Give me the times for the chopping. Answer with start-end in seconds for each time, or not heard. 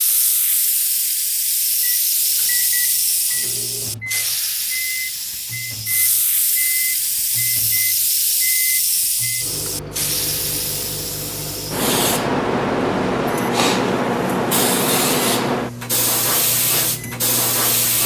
not heard.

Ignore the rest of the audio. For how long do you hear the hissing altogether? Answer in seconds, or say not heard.
18 s.